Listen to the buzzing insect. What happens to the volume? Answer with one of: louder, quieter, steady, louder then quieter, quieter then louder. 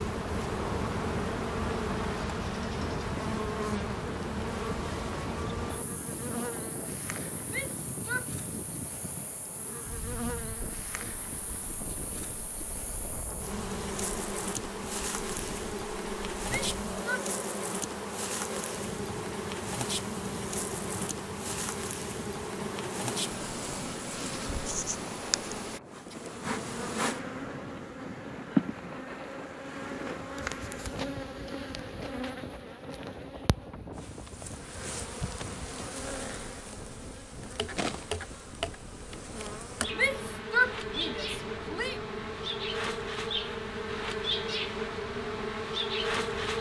steady.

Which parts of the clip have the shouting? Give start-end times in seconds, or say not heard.
7.5-8.3, 16.4-17.2, 40.0-42.0.